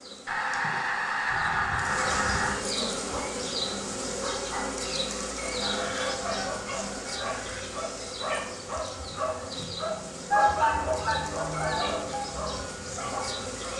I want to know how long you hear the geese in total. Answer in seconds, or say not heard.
6 s.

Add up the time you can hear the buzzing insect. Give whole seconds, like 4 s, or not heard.
14 s.